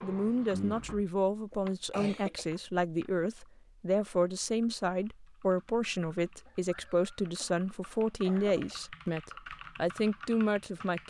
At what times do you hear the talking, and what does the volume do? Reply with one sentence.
You can hear the talking from 0.0 to 11.0 s, at a steady volume.